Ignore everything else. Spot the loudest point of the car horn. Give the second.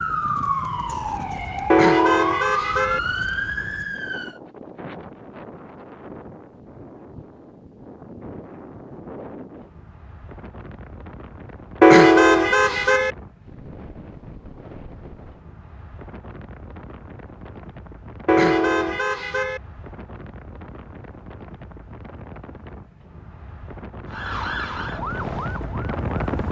12 s.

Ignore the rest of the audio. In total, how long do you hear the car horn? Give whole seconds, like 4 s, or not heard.
4 s.